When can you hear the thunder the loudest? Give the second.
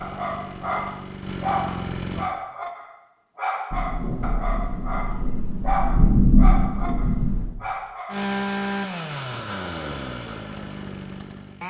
6 s.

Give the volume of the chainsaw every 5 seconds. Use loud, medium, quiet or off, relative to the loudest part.
medium, loud, medium.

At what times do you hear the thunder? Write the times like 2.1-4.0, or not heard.
3.7-7.5.